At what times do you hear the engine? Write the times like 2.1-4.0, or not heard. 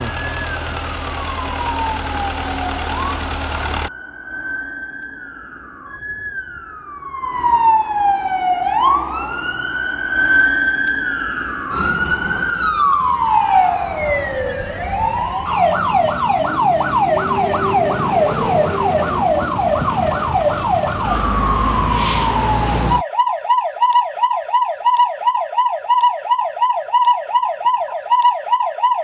0.0-3.9.